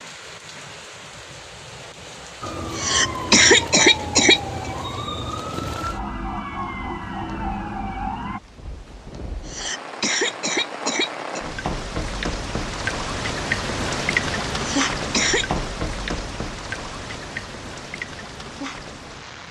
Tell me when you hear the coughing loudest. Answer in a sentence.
The volume of the coughing peaks at 3 seconds.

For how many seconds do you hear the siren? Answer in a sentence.
The siren can be heard for 6 seconds in total.